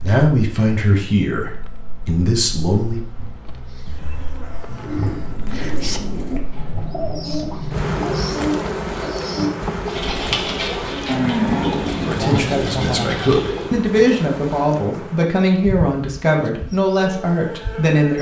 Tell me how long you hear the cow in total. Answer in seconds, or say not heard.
4 s.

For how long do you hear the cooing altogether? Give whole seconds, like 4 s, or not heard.
9 s.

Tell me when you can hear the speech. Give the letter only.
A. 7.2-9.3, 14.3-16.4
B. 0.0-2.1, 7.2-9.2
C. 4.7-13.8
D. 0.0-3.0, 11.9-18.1
D.